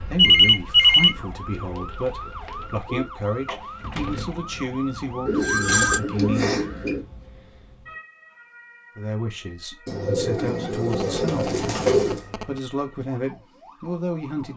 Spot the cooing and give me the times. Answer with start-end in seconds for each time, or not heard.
1.1-3.0, 5.2-7.0, 9.8-12.2.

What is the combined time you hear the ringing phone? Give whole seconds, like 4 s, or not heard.
3 s.